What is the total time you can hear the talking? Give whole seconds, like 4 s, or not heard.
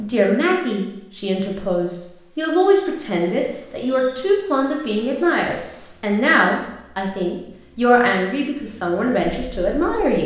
10 s.